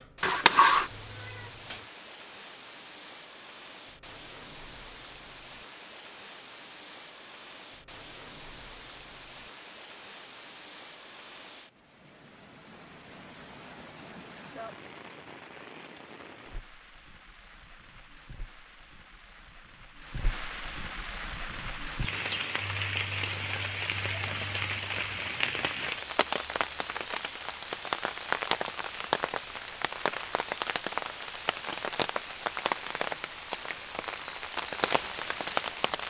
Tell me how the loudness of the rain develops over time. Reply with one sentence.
The volume of the rain goes up.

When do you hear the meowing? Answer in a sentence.
The meowing can be heard from 0.2 to 1.8 s.